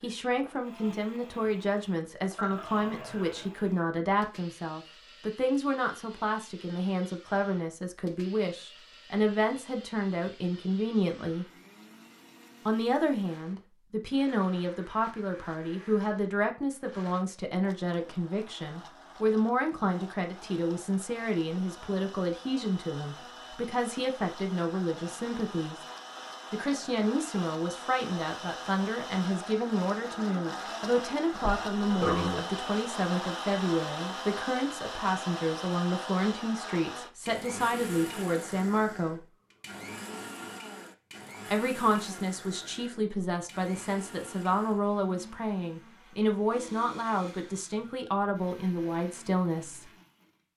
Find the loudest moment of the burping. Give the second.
32 s.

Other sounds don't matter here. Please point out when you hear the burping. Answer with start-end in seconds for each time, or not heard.
2.4-3.5, 31.3-32.5.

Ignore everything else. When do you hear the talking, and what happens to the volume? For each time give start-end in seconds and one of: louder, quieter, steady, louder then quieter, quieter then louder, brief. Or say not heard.
0.0-11.4 steady
12.7-25.8 steady
26.5-39.2 steady
41.5-49.9 steady.